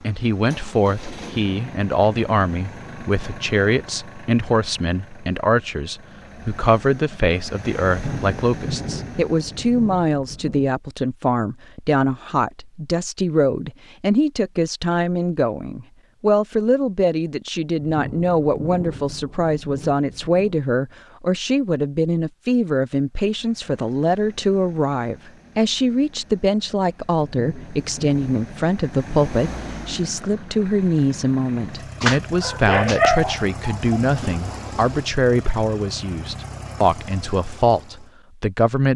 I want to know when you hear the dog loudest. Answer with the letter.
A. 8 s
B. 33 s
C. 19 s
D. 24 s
B.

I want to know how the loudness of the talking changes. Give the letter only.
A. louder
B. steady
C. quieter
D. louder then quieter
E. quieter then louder
B.